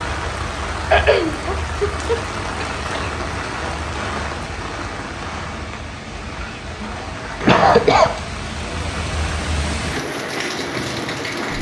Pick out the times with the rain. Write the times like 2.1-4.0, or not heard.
0.0-11.5.